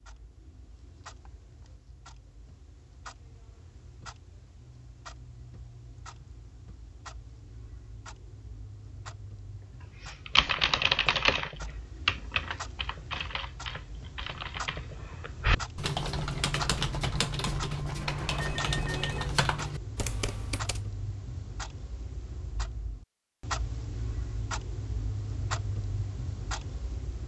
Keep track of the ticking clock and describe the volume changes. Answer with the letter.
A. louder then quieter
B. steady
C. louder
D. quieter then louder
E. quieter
C.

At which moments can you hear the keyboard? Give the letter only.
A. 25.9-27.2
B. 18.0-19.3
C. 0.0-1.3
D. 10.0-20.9
D.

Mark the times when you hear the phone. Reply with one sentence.
You can hear the phone from 18.0 to 19.3 s.